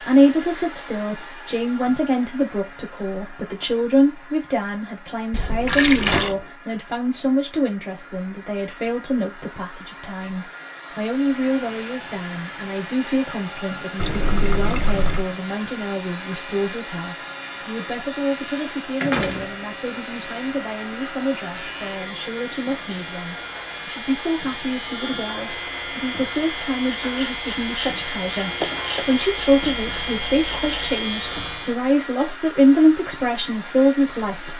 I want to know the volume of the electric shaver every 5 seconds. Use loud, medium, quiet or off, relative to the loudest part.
off, off, quiet, quiet, medium, loud, loud.